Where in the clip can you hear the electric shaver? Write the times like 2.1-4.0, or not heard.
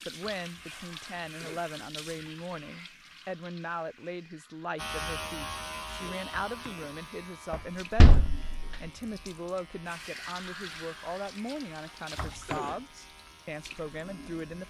4.8-14.6.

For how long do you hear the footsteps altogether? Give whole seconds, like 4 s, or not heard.
not heard.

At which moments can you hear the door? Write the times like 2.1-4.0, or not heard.
7.5-8.8.